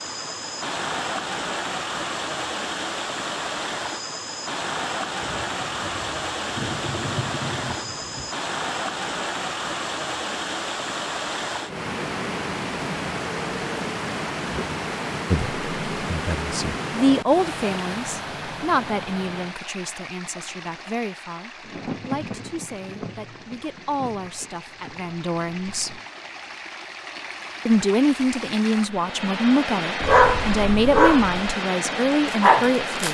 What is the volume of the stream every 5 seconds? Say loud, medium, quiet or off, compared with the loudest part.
loud, loud, loud, loud, quiet, medium, loud.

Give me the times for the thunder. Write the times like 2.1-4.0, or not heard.
5.2-8.3, 21.6-26.1.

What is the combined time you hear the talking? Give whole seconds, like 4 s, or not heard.
16 s.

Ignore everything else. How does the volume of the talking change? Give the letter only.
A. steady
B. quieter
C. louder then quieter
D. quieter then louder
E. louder
D.